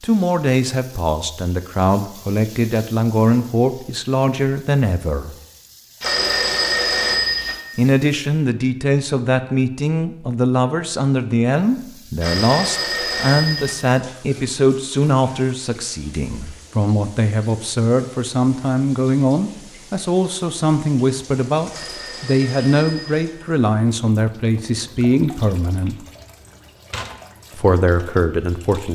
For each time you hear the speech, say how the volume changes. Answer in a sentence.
You can hear the speech from 0.0 to 5.3 s, at a steady volume; from 7.8 to 26.1 s, at a steady volume; and briefly from 27.6 to 28.9 s.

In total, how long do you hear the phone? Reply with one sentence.
You can hear the phone for 5 seconds altogether.